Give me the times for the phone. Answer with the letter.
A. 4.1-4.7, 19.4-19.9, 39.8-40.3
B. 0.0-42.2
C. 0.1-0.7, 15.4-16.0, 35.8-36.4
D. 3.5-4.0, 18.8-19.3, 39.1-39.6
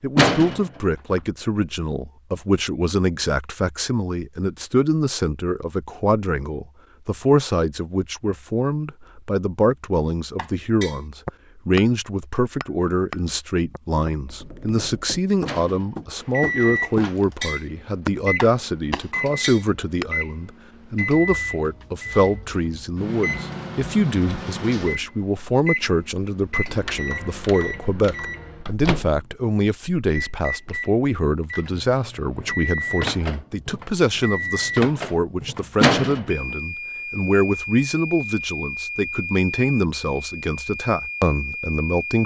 C.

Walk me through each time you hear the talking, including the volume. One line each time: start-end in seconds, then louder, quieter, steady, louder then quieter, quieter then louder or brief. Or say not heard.
0.0-42.2 steady.